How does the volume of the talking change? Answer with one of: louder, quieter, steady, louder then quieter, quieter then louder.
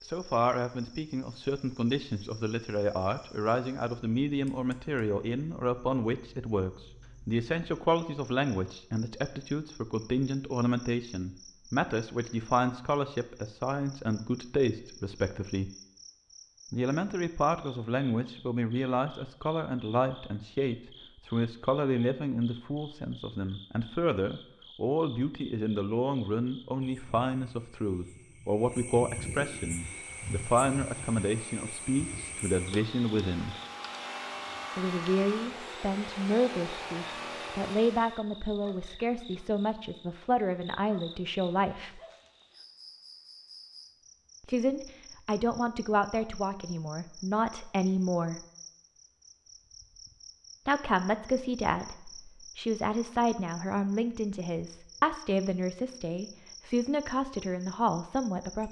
steady.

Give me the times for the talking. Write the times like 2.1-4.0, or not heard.
0.0-15.7, 16.7-33.5, 34.8-42.0, 44.5-48.5, 50.6-58.6.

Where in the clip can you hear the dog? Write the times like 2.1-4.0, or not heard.
not heard.